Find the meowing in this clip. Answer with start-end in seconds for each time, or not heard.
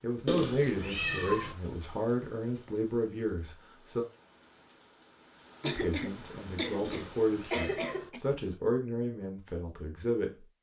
0.2-1.6, 6.8-8.1.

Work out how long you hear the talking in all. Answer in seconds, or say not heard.
9 s.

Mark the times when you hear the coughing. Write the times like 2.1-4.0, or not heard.
5.6-8.2.